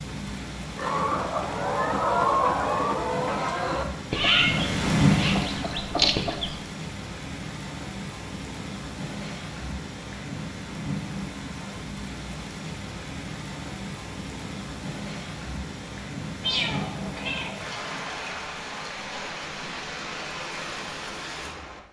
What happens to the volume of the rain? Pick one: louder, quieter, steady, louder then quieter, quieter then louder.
louder then quieter.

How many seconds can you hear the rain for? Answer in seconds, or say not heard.
22 s.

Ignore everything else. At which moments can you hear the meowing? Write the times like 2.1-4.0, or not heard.
4.1-5.3, 16.4-17.6.